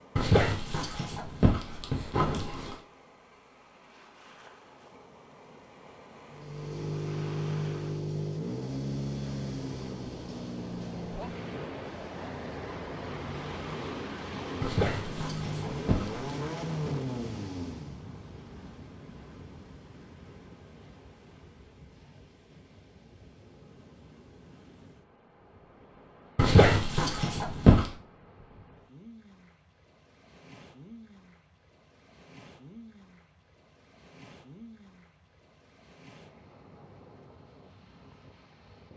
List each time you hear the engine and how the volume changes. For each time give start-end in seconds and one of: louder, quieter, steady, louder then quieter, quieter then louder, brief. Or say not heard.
6.3-18.1 quieter then louder.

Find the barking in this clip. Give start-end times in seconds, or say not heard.
0.1-2.8, 14.6-16.2, 26.4-27.9.